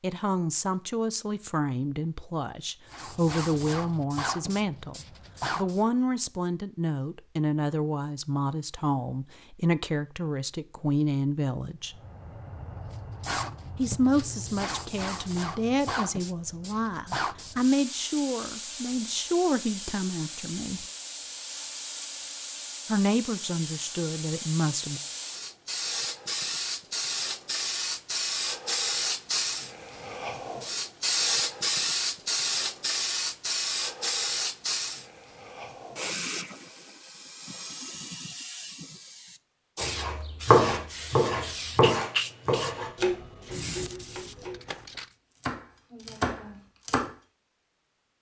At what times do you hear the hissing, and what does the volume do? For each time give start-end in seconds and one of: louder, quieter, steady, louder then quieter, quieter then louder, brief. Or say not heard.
2.9-5.8 brief
11.9-45.1 louder then quieter.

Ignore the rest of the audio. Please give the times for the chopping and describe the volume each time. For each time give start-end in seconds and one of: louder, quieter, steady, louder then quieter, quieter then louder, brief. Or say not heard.
39.8-44.6 quieter
45.4-47.1 brief.